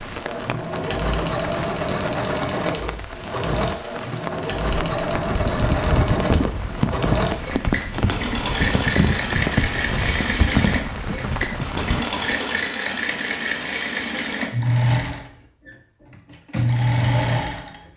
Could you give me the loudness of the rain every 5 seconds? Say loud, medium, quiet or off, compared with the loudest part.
medium, loud, loud, off.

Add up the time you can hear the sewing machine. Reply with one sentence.
You can hear the sewing machine for 18 seconds altogether.